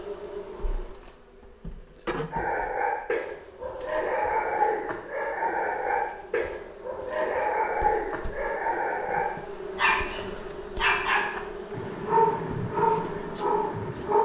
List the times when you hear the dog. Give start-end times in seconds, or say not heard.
2.3-14.2.